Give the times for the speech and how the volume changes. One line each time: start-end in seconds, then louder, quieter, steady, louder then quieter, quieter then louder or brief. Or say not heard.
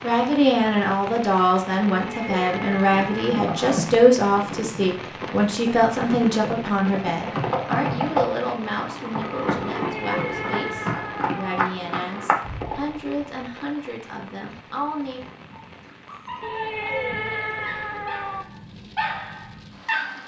0.0-15.2 quieter.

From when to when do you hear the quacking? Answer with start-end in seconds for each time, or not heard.
not heard.